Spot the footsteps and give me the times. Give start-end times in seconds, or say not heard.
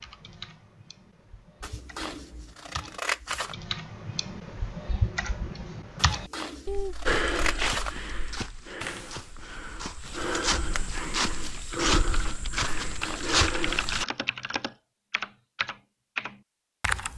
7.0-14.1.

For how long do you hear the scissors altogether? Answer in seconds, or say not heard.
5 s.